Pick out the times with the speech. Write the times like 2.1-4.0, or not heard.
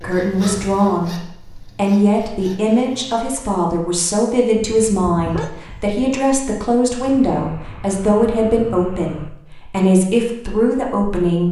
0.0-11.4.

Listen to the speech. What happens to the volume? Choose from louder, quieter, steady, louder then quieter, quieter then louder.
steady.